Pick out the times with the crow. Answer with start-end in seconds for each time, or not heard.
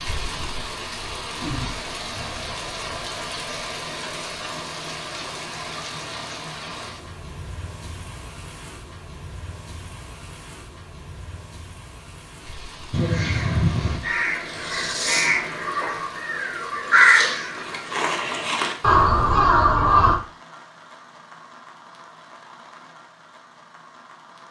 12.9-20.1.